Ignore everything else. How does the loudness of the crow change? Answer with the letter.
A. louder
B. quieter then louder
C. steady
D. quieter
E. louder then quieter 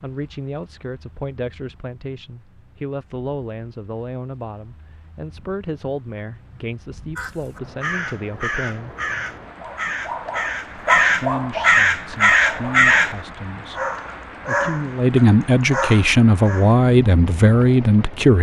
A.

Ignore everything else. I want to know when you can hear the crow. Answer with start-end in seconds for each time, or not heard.
7.2-13.2.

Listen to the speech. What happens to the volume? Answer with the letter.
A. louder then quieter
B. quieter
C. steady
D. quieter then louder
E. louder
E.